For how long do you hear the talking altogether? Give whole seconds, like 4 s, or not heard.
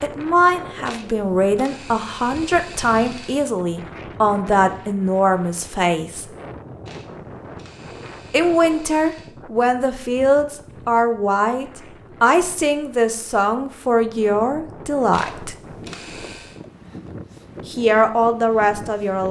15 s.